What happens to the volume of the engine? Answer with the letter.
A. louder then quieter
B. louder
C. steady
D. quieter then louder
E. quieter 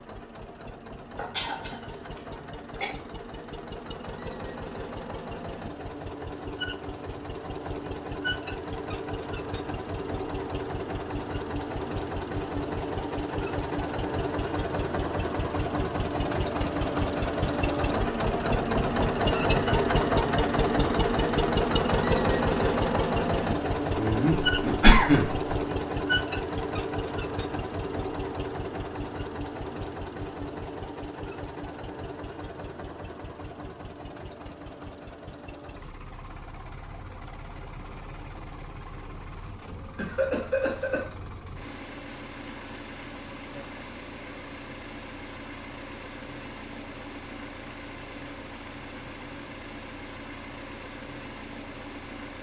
A.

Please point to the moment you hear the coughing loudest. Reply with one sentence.
The loudest moment of the coughing is at 25 seconds.